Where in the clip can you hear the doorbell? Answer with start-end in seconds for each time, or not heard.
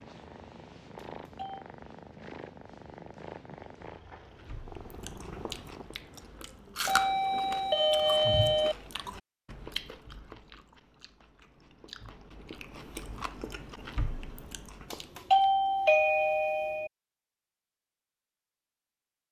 0.9-1.6, 6.8-8.8, 14.9-16.9.